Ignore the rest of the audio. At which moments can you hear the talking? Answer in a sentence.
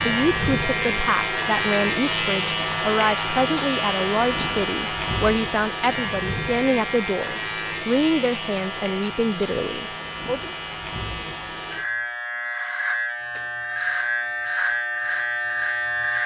The talking can be heard from 0.0 to 10.6 s.